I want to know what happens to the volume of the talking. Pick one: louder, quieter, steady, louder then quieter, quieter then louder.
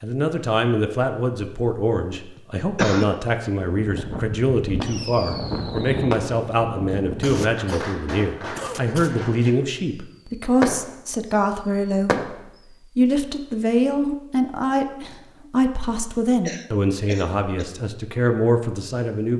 steady.